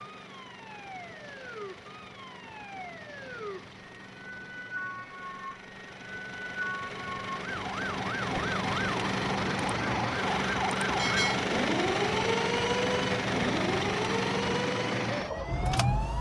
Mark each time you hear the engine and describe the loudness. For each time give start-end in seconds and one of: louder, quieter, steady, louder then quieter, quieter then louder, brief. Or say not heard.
0.0-16.1 louder.